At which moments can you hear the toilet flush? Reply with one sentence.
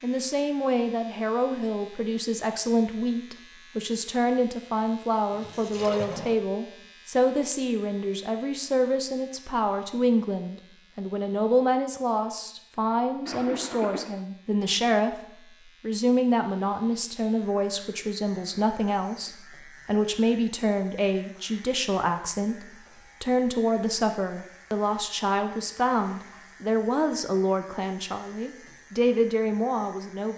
You can hear the toilet flush from 5.3 to 6.4 s, from 13.2 to 14.2 s and from 25.9 to 26.6 s.